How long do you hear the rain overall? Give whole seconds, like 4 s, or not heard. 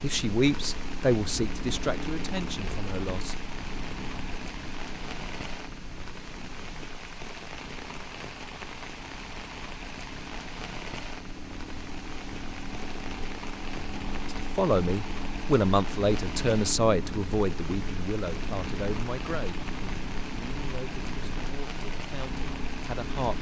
23 s.